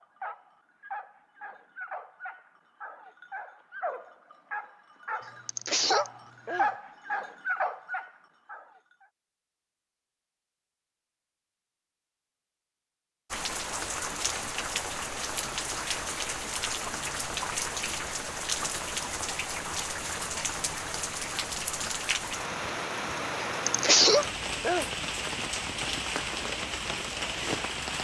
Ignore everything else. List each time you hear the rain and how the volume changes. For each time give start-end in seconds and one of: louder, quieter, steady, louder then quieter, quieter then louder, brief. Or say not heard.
13.3-27.9 steady.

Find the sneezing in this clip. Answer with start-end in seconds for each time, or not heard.
5.5-6.7, 23.6-24.9.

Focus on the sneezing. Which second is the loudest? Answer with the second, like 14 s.
24 s.